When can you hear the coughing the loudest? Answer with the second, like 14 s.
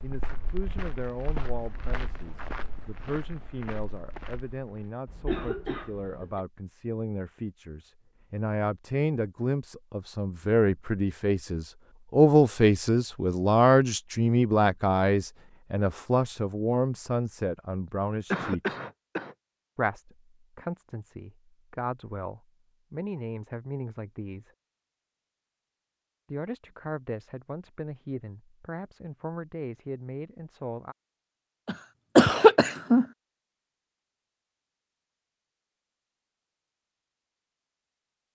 32 s.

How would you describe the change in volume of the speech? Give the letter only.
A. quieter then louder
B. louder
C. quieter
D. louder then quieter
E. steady
D.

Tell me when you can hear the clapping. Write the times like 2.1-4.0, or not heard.
not heard.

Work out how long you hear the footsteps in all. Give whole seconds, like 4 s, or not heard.
5 s.